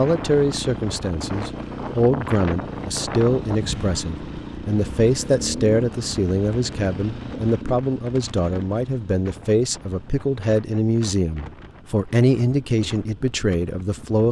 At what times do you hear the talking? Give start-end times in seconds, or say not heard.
0.0-14.2.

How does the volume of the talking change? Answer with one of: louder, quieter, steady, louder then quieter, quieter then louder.
steady.